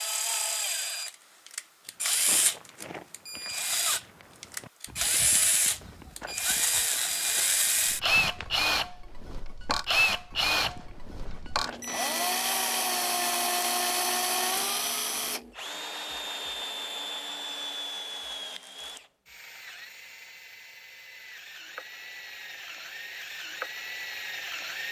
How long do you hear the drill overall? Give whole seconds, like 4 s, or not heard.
25 s.